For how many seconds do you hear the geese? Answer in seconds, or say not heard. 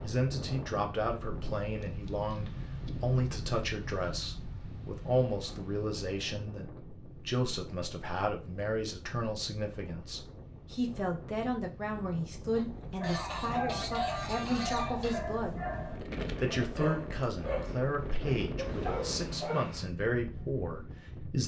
3 s.